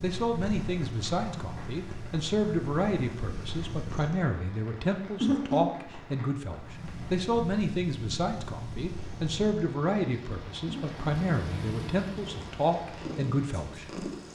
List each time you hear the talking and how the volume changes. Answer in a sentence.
The talking can be heard from 0.0 to 14.1 s, at a steady volume.